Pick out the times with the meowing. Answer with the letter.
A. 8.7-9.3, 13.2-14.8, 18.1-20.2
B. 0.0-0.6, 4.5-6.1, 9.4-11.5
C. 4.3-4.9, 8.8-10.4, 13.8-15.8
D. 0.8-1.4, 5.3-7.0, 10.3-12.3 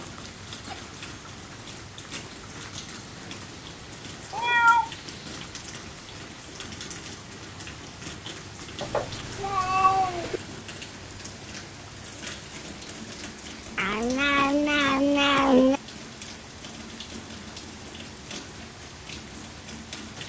C.